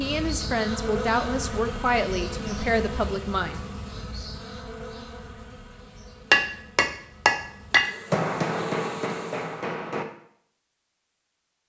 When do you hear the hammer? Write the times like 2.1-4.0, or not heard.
6.3-10.1.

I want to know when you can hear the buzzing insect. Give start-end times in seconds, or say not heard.
0.0-9.7.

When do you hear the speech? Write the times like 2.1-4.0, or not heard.
0.0-3.6.